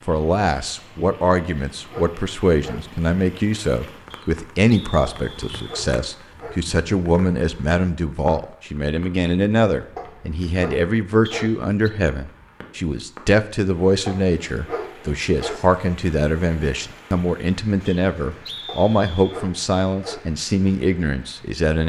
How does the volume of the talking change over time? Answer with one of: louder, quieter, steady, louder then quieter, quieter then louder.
steady.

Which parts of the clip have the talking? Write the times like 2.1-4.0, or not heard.
0.1-21.8.